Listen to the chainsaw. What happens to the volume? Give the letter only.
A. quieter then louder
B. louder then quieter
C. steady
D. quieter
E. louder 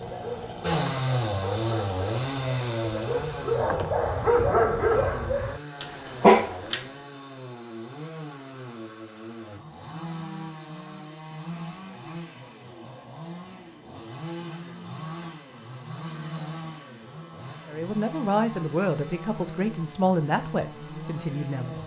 D.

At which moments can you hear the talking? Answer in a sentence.
You can hear the talking from 17.6 to 21.8 s.